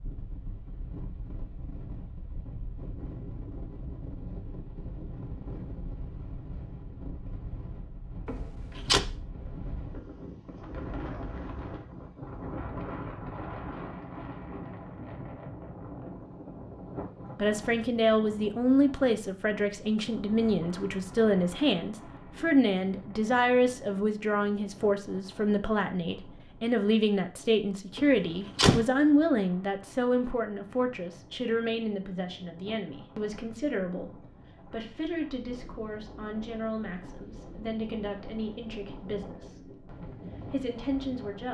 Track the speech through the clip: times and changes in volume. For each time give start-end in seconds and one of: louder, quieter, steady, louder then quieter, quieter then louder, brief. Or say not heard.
17.4-39.8 quieter
40.5-41.4 brief.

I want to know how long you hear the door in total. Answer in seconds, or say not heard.
2 s.